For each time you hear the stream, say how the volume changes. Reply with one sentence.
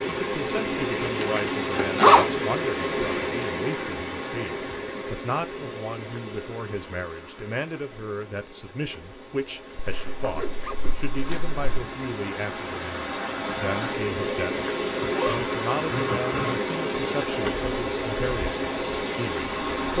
You can hear the stream from 0.0 to 19.9 s, getting quieter then louder.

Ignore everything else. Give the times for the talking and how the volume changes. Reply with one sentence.
The talking can be heard from 0.0 to 19.9 s, at a steady volume.